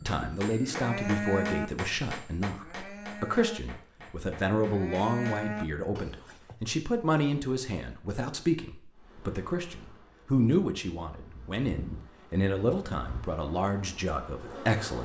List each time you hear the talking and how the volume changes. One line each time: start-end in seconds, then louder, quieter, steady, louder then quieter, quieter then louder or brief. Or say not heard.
0.1-14.9 steady.